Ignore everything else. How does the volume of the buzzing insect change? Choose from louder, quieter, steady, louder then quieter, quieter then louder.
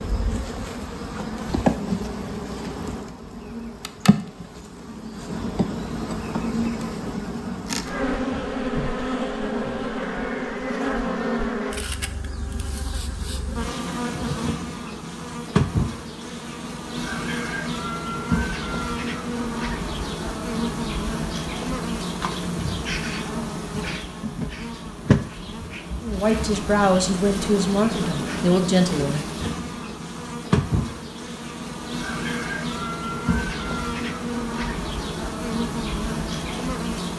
steady.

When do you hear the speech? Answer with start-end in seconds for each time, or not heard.
26.0-29.4.